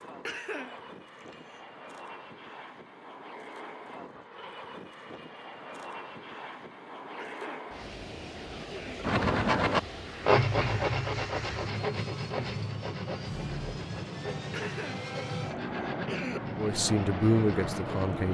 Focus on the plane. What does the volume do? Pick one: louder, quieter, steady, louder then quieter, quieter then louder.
louder.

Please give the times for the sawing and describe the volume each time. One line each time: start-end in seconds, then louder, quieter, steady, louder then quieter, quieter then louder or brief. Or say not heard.
9.0-18.1 quieter.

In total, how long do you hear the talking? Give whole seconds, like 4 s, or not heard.
2 s.